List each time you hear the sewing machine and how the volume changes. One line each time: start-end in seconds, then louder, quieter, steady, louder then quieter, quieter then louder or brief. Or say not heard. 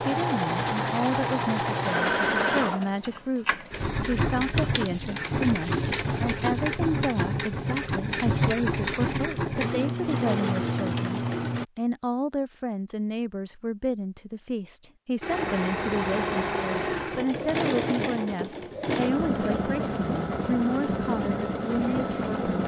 0.0-11.7 steady
15.2-22.6 steady.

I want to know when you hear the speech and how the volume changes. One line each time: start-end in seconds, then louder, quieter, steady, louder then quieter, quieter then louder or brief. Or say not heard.
0.0-22.6 steady.